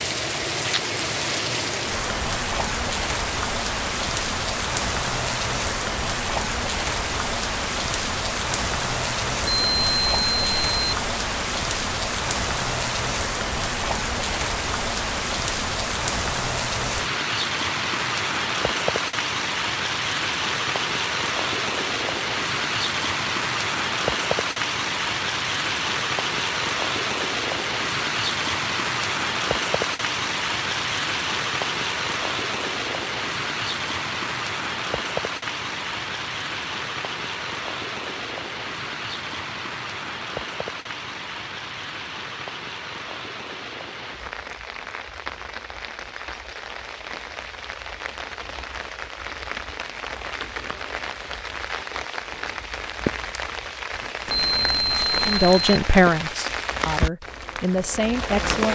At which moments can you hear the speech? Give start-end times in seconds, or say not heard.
55.2-58.6.